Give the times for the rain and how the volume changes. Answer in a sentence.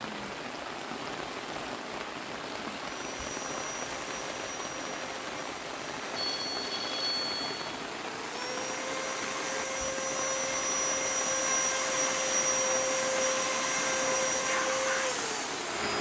You can hear the rain from 0.0 to 15.9 s, at a steady volume.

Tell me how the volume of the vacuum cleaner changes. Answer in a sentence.
The volume of the vacuum cleaner goes up.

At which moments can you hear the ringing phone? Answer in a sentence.
The ringing phone can be heard from 6.2 to 7.7 s.